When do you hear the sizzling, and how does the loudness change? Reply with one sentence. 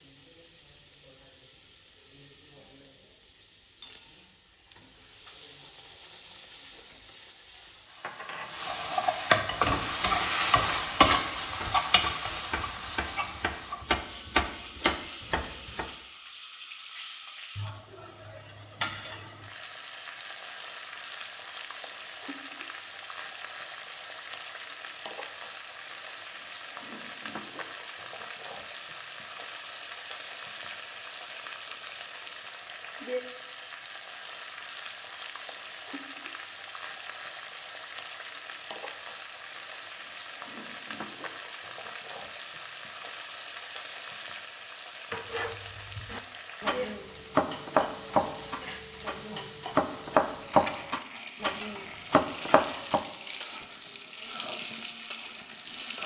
You can hear the sizzling from 0.0 to 56.0 s, getting quieter.